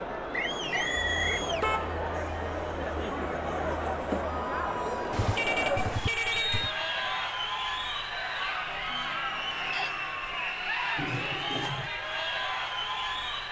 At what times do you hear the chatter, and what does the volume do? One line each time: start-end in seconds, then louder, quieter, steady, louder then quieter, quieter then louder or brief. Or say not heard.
0.0-13.4 steady.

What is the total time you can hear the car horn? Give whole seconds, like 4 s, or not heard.
4 s.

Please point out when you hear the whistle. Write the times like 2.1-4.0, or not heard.
0.3-1.4, 6.3-7.2, 9.7-10.9.